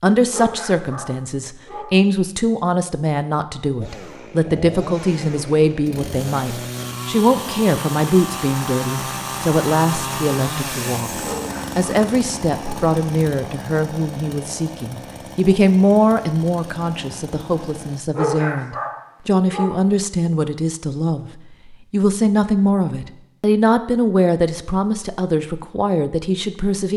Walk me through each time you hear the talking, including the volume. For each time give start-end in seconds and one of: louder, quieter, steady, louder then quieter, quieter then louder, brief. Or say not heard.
0.0-26.9 steady.